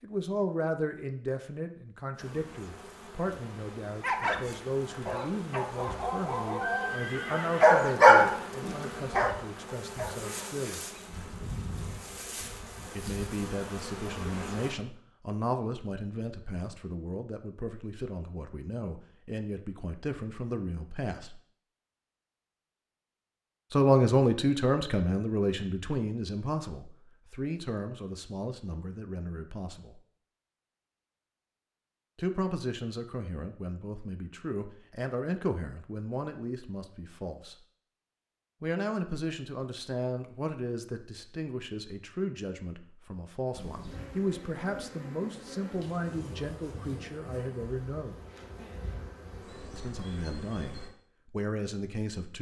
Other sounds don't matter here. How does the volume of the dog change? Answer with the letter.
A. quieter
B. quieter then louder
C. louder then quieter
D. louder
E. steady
C.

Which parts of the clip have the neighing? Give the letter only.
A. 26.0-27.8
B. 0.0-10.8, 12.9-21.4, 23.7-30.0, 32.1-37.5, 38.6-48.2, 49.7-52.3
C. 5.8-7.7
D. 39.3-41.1
C.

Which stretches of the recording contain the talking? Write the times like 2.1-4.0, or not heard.
0.0-10.8, 12.9-21.4, 23.7-30.0, 32.1-37.5, 38.6-48.2, 49.7-52.3.